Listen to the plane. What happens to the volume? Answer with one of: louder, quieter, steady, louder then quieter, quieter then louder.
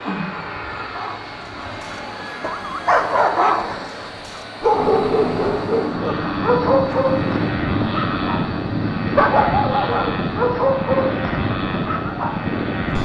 louder.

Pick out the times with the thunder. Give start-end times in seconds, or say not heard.
4.7-9.1.